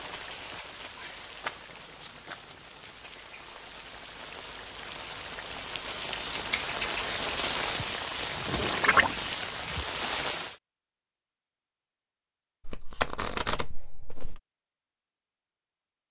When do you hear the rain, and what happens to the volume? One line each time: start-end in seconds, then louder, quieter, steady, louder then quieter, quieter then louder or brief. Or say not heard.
0.0-10.6 louder.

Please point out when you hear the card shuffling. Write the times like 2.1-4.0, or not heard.
1.4-3.0, 6.3-7.9, 12.7-14.4.